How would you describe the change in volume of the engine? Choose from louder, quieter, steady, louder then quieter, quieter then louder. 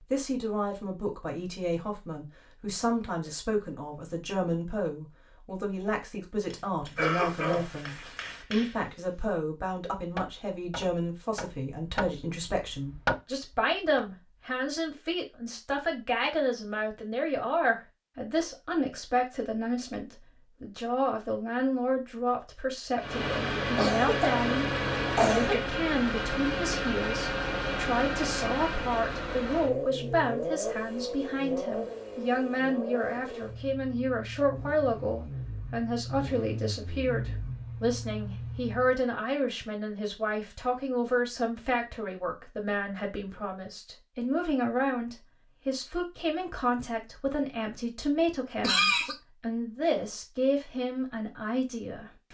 quieter.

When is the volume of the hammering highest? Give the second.
13 s.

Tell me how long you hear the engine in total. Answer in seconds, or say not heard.
16 s.